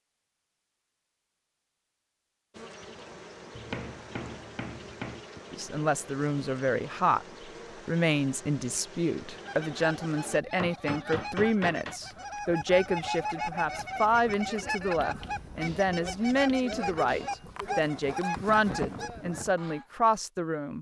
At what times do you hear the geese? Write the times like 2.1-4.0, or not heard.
9.3-19.9.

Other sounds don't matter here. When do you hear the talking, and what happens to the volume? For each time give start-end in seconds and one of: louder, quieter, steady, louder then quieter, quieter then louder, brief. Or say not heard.
5.5-7.2 brief
7.8-20.7 steady.